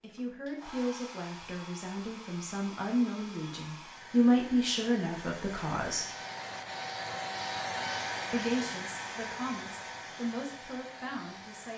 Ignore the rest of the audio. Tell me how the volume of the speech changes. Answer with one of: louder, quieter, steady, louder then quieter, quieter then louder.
louder then quieter.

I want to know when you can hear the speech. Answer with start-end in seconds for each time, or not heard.
0.0-6.1, 8.3-11.7.